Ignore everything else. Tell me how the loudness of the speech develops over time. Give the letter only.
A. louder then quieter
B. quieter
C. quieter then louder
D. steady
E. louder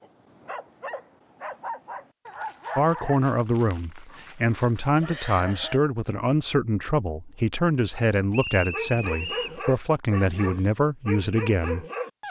D.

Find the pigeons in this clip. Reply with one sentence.
You can't hear the pigeons here.